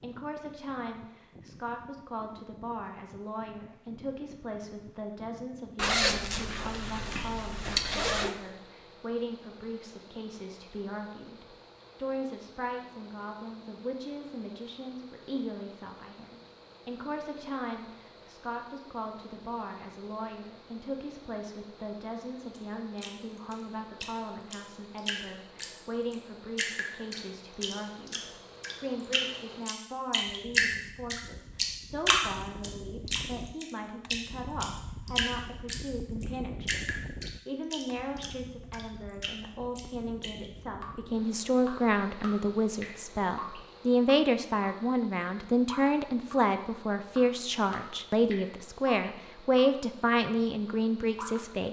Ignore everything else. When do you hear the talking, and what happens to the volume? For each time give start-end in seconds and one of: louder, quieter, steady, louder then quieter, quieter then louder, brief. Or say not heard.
0.0-51.6 louder.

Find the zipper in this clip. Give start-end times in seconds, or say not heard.
5.8-8.3.